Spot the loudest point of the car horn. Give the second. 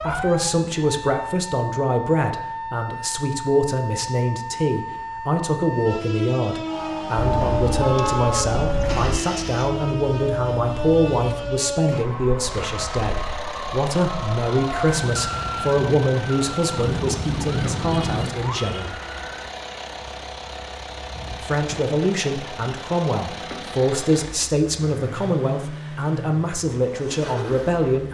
8 s.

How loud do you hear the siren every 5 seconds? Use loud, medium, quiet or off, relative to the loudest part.
loud, loud, loud, loud, off, off.